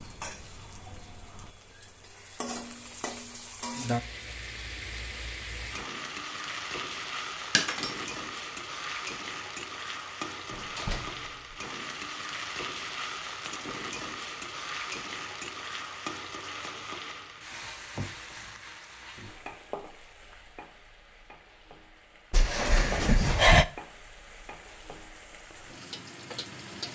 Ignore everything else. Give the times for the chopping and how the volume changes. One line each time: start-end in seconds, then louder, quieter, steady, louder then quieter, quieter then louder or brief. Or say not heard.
not heard.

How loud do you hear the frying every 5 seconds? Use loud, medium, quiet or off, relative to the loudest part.
loud, loud, loud, loud, quiet, medium.